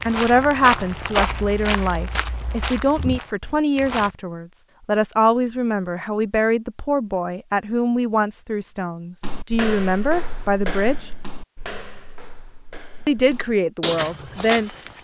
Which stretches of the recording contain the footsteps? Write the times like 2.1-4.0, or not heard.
0.0-4.1, 9.2-14.9.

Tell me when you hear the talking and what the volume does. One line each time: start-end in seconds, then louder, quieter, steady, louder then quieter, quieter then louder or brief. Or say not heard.
0.1-10.9 steady
13.1-14.7 brief.